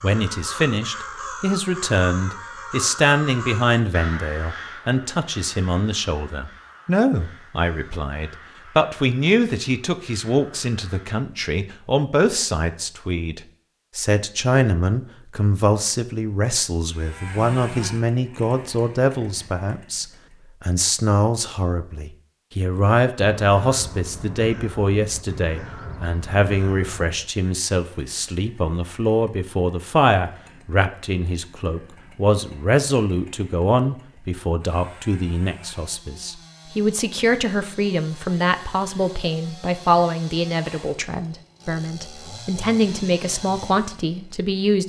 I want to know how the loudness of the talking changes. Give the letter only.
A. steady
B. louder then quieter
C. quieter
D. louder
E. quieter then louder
A.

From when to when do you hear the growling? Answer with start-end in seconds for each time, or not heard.
not heard.